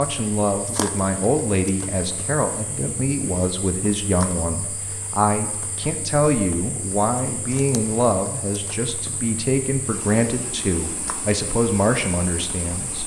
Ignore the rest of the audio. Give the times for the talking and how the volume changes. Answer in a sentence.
You can hear the talking from 0.0 to 13.0 s, at a steady volume.